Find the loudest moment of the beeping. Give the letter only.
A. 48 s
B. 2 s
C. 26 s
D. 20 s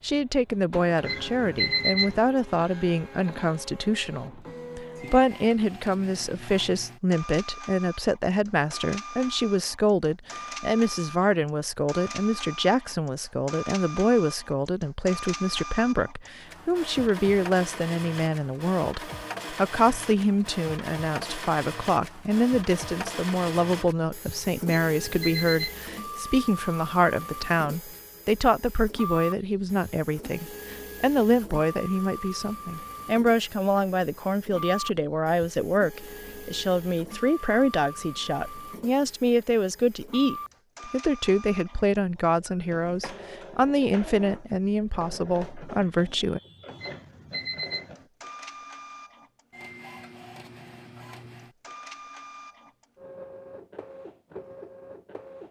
B.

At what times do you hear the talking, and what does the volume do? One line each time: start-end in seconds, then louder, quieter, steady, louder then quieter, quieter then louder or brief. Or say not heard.
0.0-46.4 steady.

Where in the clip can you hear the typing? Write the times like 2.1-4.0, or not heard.
not heard.